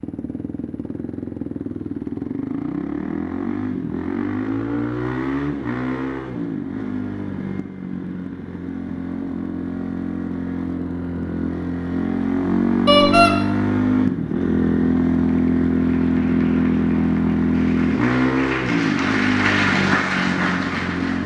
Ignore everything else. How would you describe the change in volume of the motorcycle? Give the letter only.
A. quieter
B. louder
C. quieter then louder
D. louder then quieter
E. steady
B.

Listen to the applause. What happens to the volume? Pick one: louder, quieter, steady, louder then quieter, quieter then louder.
louder.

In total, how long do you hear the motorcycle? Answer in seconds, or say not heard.
21 s.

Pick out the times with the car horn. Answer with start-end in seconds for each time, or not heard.
12.8-13.3.